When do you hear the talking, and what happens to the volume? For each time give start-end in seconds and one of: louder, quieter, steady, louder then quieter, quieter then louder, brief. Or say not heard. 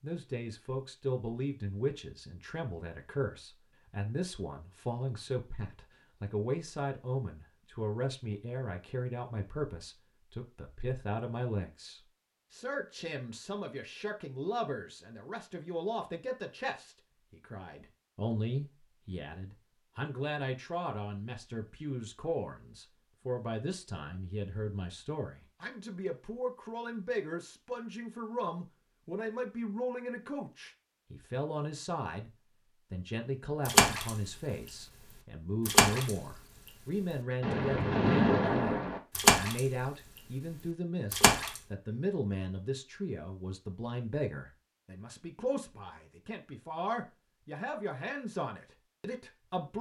0.0-32.3 steady
32.9-49.7 steady.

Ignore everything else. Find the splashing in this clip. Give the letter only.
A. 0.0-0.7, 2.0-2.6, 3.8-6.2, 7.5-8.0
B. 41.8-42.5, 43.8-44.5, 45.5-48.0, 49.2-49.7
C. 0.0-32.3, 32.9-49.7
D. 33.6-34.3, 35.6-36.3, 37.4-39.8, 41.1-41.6
D.